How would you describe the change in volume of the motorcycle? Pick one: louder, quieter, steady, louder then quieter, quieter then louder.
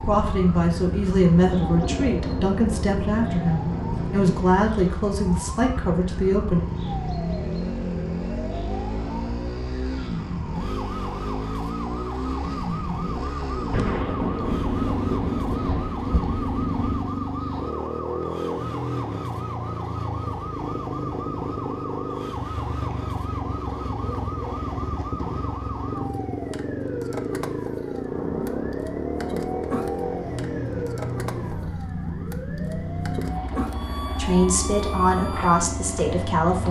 steady.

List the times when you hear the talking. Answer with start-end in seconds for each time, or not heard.
0.0-6.6, 34.1-36.6.